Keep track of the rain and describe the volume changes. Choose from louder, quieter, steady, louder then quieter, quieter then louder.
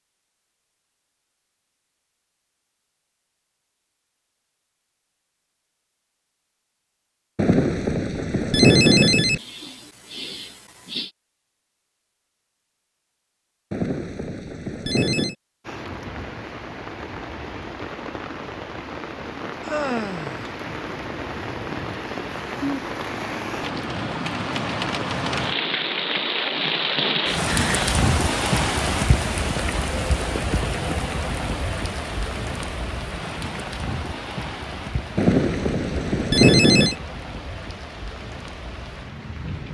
louder then quieter.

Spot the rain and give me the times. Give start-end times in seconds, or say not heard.
15.6-39.6.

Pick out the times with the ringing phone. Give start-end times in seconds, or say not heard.
7.3-9.4, 13.7-15.3, 35.1-37.0.